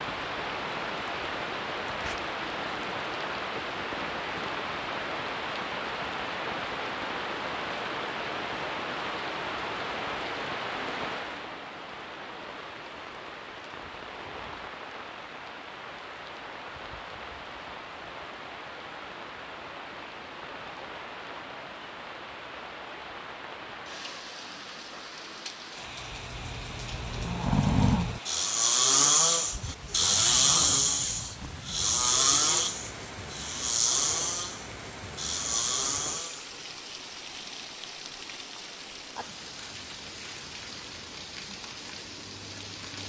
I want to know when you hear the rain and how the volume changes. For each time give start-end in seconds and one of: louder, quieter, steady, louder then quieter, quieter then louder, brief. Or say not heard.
0.0-43.0 quieter.